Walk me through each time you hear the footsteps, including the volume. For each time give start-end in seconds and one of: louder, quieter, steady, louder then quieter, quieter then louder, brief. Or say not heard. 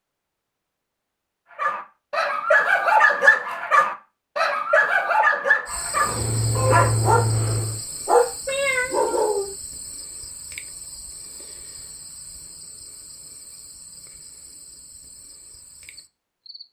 not heard.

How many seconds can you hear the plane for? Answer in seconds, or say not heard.
2 s.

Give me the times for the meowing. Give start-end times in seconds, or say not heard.
8.4-9.5.